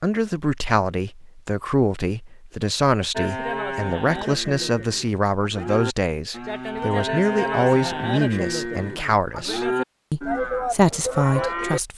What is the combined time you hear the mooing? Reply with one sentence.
The mooing can be heard for 9 seconds in total.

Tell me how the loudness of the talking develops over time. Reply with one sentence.
The volume of the talking stays about the same.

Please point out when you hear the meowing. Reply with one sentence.
The meowing can't be heard in this clip.